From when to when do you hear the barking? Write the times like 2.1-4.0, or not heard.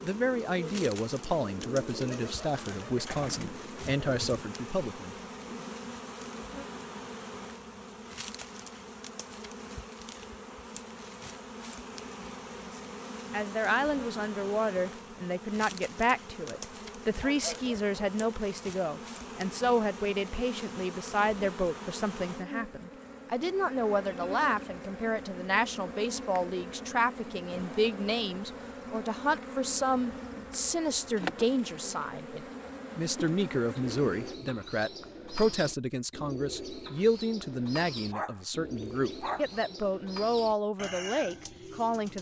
17.1-18.2, 38.1-39.6.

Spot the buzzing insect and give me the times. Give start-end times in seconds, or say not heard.
0.0-34.4.